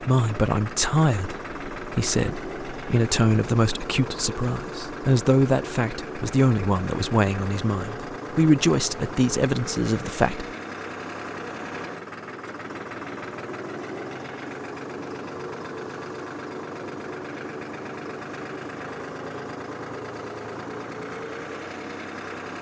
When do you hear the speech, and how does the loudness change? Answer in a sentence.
You can hear the speech from 0.0 to 10.4 s, at a steady volume.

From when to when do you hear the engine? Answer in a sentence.
The engine can be heard from 0.0 to 22.5 s.